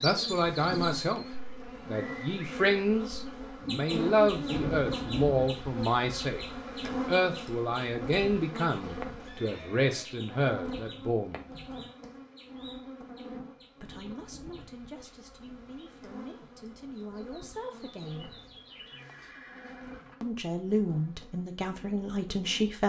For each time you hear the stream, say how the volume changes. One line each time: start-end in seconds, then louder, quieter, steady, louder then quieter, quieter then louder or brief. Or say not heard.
not heard.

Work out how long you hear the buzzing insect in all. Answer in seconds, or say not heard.
23 s.